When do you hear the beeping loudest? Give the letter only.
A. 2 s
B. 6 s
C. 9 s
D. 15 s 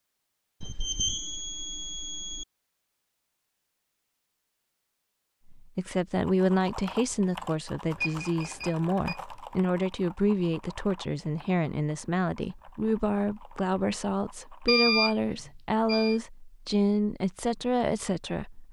D.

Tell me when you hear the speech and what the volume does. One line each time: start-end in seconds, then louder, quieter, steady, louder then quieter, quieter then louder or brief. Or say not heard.
5.5-18.6 steady.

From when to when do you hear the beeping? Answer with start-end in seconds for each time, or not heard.
0.6-2.5, 8.0-9.2, 14.7-16.2.